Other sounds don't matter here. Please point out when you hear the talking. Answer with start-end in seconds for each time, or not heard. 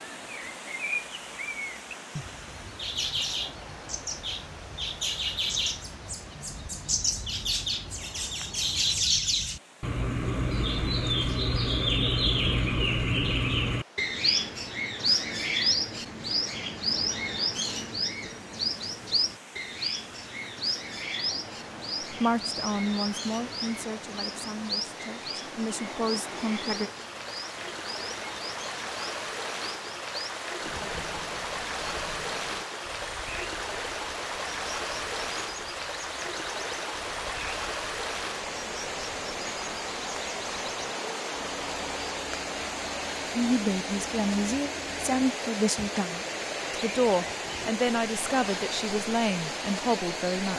22.1-26.9, 43.4-50.5.